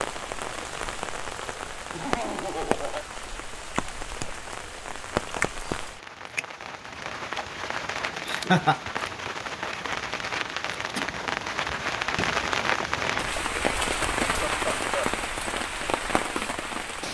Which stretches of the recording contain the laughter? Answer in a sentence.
You can hear the laughter from 1.9 to 3.0 s, from 8.2 to 8.8 s and from 14.2 to 15.2 s.